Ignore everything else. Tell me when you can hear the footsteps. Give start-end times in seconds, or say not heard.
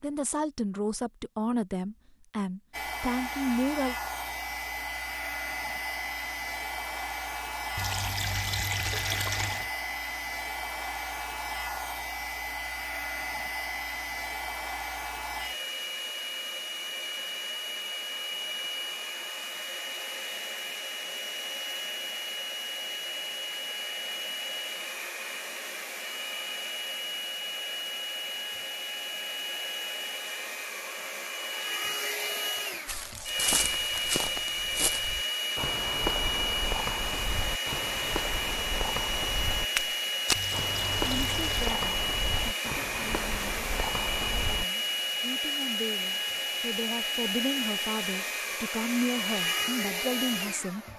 32.9-44.6.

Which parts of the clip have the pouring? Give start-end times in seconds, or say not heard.
7.8-9.7, 40.4-41.8.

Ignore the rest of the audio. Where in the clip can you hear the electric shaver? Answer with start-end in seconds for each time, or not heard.
not heard.